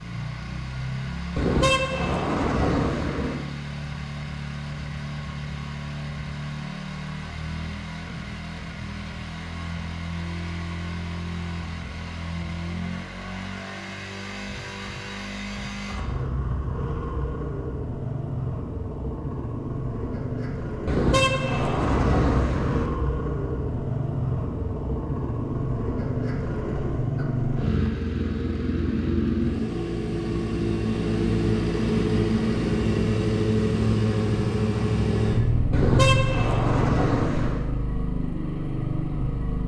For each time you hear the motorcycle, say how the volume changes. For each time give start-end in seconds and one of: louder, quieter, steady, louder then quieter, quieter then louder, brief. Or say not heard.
0.0-39.6 louder.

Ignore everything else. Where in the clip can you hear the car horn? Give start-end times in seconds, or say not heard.
1.4-3.4, 20.9-22.9, 35.7-37.6.